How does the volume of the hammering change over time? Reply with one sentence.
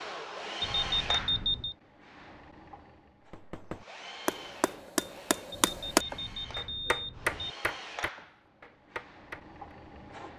The volume of the hammering goes up, then down.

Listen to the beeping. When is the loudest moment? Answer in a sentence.
The volume of the beeping peaks at 1 second.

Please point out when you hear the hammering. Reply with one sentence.
The hammering can be heard from 3.2 to 9.8 s.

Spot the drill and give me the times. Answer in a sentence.
The drill can be heard from 0.0 to 10.3 s.